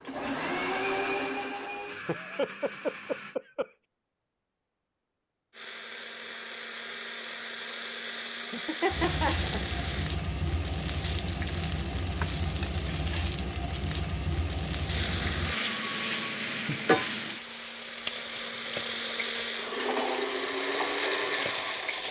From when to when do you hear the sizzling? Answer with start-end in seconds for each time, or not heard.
8.9-22.0.